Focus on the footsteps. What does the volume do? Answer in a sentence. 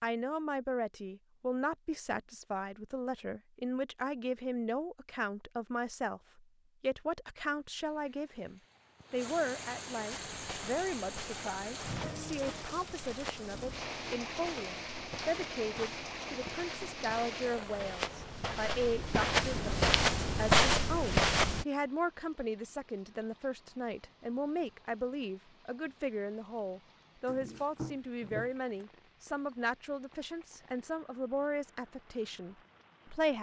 The volume of the footsteps goes up.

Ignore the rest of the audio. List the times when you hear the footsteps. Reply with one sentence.
You can hear the footsteps from 10.1 to 21.6 s.